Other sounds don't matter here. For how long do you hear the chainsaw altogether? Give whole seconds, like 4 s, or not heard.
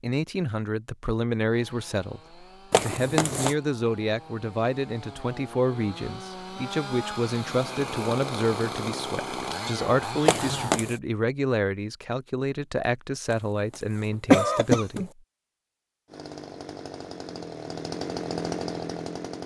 13 s.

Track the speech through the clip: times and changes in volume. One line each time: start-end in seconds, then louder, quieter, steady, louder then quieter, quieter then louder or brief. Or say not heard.
0.0-15.2 steady.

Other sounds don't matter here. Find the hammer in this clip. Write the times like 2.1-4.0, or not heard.
not heard.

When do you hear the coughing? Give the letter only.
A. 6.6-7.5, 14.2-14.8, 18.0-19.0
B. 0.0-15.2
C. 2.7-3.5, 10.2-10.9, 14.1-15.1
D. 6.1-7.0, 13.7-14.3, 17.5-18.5
C.